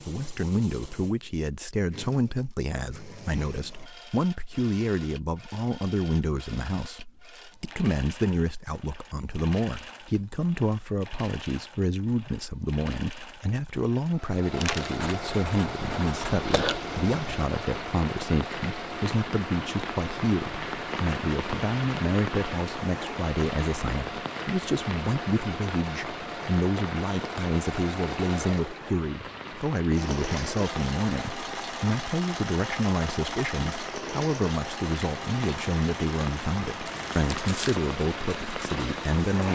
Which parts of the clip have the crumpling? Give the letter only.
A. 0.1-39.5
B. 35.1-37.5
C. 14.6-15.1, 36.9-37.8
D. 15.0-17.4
C.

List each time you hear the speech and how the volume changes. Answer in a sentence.
The speech can be heard from 0.1 to 39.5 s, at a steady volume.